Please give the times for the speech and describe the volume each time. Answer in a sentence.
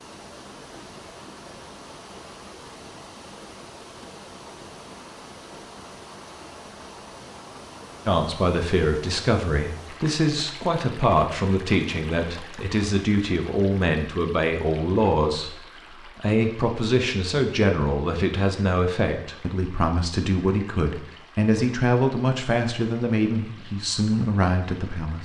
The speech can be heard from 8.1 to 25.2 s, at a steady volume.